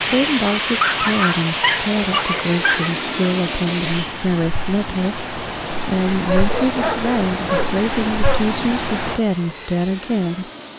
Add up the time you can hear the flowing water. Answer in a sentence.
You can hear the flowing water for 9 seconds altogether.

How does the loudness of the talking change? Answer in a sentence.
The volume of the talking stays about the same.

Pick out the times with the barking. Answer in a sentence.
You can hear the barking from 0.8 to 2.9 s and from 6.2 to 8.6 s.